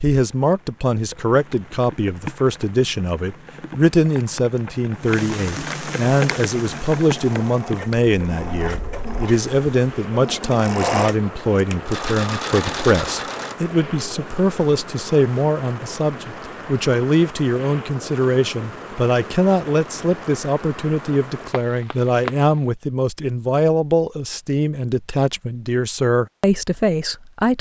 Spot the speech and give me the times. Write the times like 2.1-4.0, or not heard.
0.0-27.5.